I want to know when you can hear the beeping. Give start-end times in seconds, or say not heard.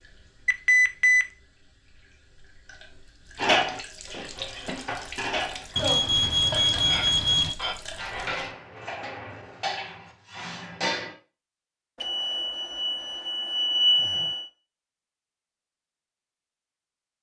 0.5-1.2, 5.8-7.5, 12.0-14.5.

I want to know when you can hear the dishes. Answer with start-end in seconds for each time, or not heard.
3.4-11.2.